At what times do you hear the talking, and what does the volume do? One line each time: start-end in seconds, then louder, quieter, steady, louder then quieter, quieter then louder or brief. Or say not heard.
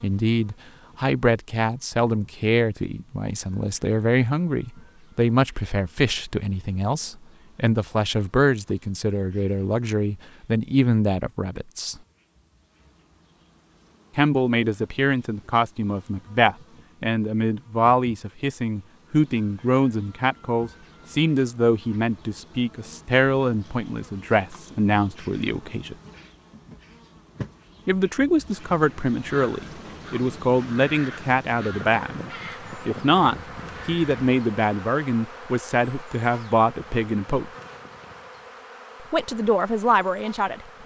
0.0-12.0 steady
14.2-25.9 steady
27.9-37.5 steady
39.1-40.8 brief.